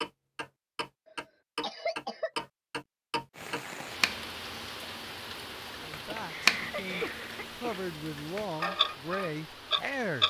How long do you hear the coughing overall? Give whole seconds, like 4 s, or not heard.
3 s.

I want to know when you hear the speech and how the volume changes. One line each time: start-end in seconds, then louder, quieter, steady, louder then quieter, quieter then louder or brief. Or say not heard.
5.8-10.2 louder.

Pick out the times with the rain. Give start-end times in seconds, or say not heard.
3.3-10.2.